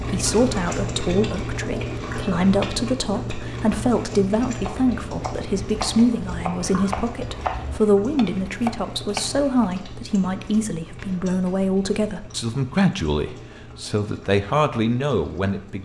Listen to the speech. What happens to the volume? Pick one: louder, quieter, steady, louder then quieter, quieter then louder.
steady.